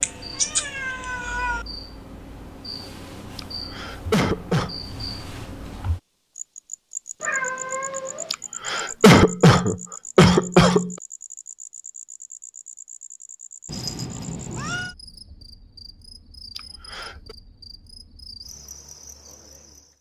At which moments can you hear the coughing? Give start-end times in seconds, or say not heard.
3.4-4.8, 8.3-10.9, 16.6-17.4.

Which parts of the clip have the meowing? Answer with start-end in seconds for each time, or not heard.
0.0-1.6, 7.2-8.3, 13.7-14.9.